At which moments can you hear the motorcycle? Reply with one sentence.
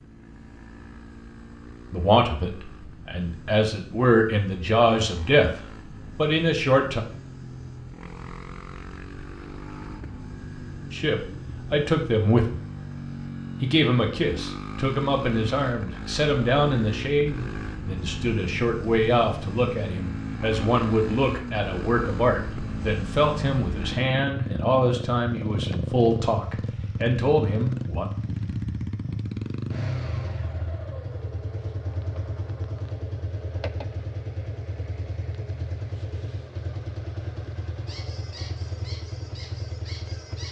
You can hear the motorcycle from 0.0 to 40.4 s.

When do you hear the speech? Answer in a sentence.
The speech can be heard from 1.9 to 5.5 s, from 6.2 to 7.0 s, from 10.9 to 12.6 s and from 13.6 to 28.1 s.